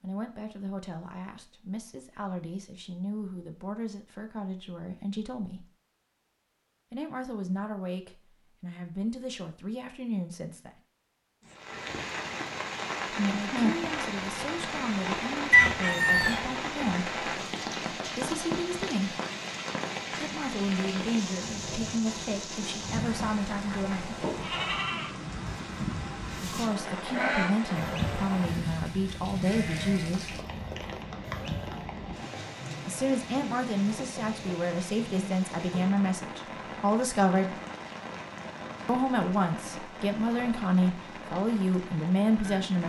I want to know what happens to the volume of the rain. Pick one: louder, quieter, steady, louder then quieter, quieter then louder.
quieter.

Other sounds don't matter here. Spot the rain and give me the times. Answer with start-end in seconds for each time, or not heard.
11.4-42.8.